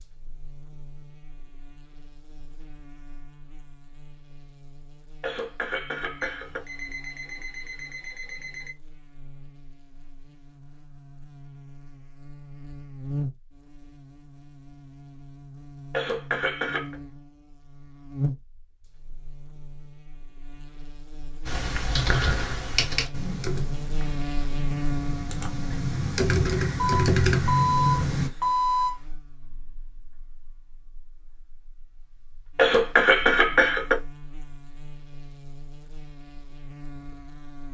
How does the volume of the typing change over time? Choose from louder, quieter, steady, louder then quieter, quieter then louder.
quieter then louder.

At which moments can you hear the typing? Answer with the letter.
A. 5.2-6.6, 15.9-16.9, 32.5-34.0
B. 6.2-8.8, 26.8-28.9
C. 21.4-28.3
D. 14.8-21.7
C.